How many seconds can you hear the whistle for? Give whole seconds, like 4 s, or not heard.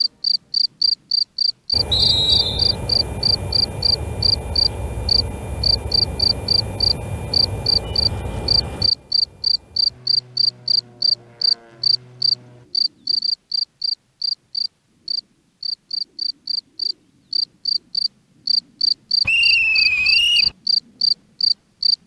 2 s.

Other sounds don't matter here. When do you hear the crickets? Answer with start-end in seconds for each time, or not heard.
0.0-21.9.